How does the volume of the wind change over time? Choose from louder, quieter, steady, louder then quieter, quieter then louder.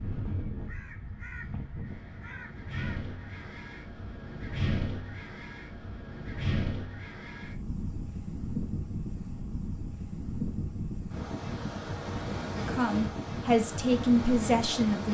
louder.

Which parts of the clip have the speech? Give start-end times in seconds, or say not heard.
12.6-15.0.